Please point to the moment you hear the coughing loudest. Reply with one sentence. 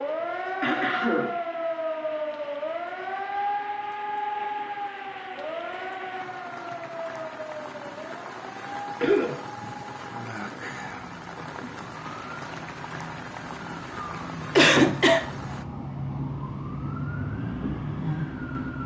The volume of the coughing peaks at 15 seconds.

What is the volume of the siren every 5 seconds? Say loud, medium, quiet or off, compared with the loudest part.
loud, medium, medium, loud.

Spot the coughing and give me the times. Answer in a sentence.
You can hear the coughing from 0.6 to 1.3 s, from 9.0 to 9.7 s and from 14.6 to 15.2 s.